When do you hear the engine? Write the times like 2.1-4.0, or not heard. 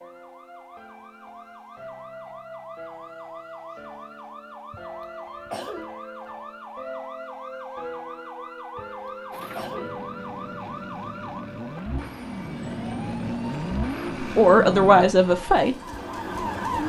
9.3-15.1.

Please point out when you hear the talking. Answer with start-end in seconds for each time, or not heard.
14.2-16.7.